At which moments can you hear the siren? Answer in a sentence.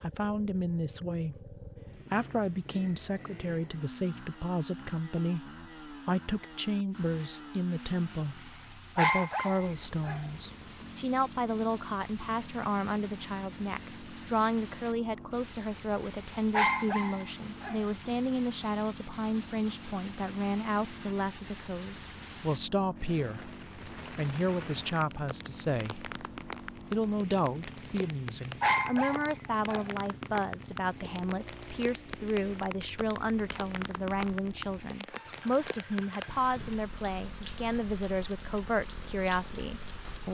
You can't hear the siren here.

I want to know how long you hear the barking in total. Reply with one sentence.
The barking can be heard for 4 seconds in total.